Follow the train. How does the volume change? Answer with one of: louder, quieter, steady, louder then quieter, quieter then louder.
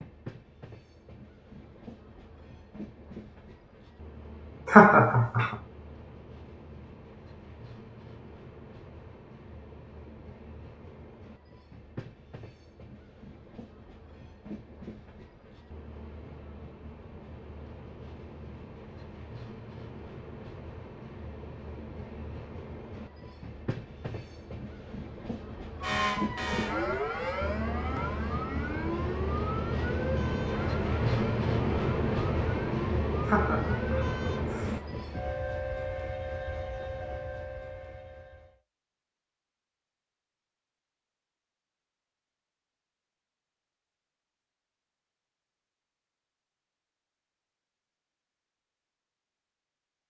louder.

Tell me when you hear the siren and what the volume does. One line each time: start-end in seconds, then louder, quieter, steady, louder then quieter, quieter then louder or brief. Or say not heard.
25.8-34.5 quieter.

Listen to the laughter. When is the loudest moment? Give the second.
5 s.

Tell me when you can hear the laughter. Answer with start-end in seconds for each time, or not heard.
4.7-5.5, 33.2-34.8.